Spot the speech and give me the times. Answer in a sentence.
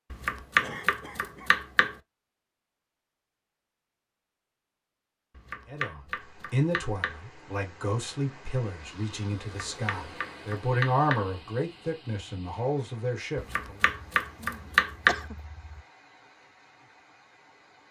You can hear the speech from 5.7 to 13.8 s.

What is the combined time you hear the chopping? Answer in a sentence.
You can hear the chopping for 7 seconds altogether.